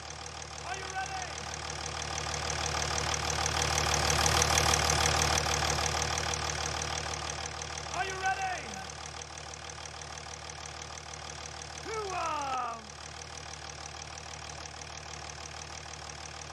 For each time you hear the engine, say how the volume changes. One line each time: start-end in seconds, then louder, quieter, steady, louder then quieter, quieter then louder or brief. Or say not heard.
0.0-16.4 louder then quieter.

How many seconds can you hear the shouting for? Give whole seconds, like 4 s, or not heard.
3 s.